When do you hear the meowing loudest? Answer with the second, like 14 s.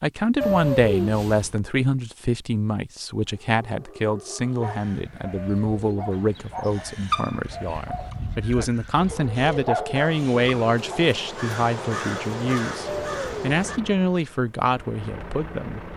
1 s.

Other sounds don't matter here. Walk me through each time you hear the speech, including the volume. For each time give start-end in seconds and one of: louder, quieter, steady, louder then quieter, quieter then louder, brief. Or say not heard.
0.0-15.9 steady.